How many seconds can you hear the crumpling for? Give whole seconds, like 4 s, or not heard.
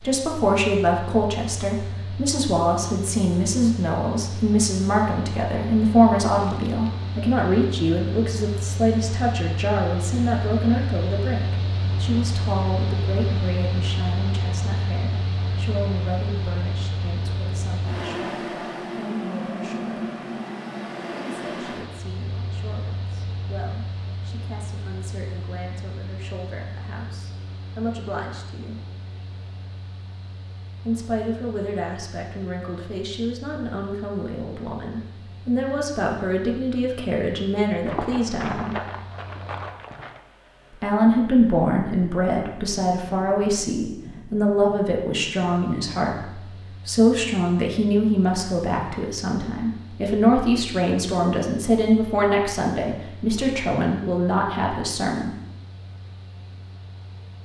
3 s.